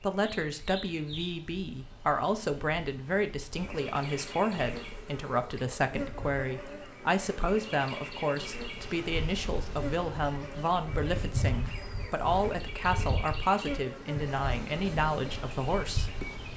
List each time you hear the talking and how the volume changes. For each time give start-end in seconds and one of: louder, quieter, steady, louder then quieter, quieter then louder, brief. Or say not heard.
0.0-16.1 steady.